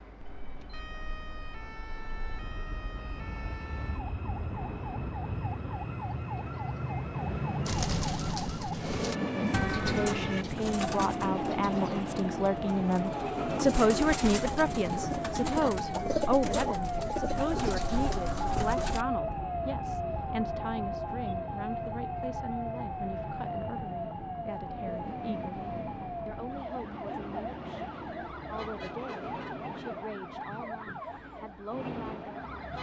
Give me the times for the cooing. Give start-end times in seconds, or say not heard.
7.7-19.1.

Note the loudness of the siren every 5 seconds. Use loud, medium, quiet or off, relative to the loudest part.
quiet, medium, loud, loud, loud, medium, medium.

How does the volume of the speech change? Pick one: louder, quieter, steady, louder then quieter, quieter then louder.
quieter.